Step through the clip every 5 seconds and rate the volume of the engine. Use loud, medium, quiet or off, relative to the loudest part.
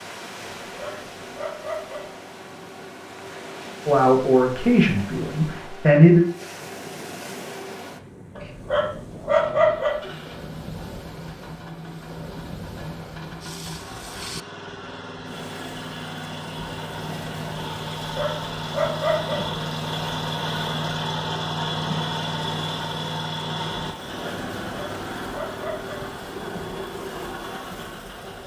quiet, quiet, medium, loud, loud, medium.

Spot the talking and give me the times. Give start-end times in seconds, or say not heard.
3.9-6.2.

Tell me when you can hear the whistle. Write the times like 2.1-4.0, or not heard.
not heard.